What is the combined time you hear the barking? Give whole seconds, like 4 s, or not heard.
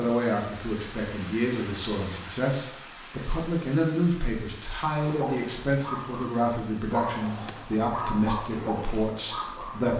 5 s.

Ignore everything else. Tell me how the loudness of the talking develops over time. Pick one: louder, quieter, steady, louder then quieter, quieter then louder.
steady.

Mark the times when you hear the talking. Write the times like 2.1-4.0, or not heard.
0.0-9.9.